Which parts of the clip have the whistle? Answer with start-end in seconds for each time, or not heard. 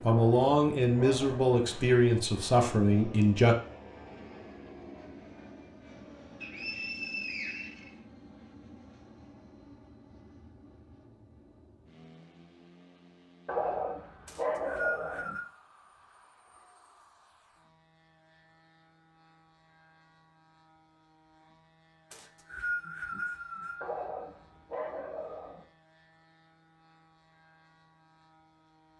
6.4-7.9, 14.2-15.4, 22.1-23.8.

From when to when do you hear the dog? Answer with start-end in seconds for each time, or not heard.
0.1-1.4, 13.4-15.3, 23.8-25.6.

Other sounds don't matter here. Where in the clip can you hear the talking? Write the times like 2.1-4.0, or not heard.
0.0-3.5.